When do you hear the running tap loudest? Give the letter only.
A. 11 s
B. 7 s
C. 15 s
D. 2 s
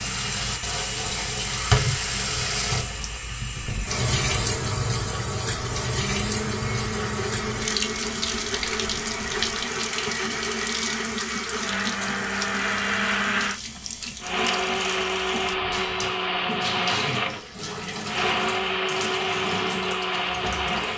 D.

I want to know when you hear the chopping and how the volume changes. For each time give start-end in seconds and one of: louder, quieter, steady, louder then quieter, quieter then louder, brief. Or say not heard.
not heard.